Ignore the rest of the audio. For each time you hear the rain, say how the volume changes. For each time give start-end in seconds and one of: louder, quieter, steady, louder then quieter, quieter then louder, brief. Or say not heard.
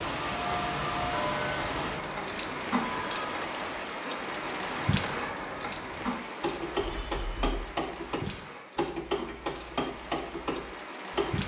0.0-11.4 quieter.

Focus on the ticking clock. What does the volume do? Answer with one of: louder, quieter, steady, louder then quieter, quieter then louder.
quieter then louder.